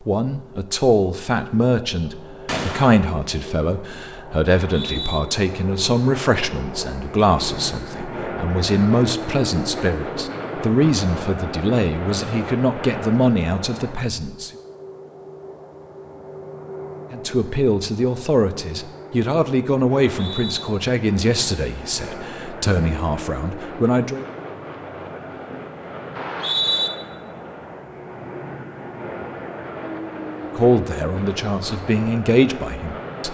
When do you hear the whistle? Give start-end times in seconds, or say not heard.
4.5-5.2, 20.1-20.6, 26.1-26.9.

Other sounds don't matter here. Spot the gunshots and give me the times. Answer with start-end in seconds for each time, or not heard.
2.5-3.0.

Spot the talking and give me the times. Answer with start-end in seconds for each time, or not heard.
0.1-14.5, 17.1-24.2, 30.6-33.2.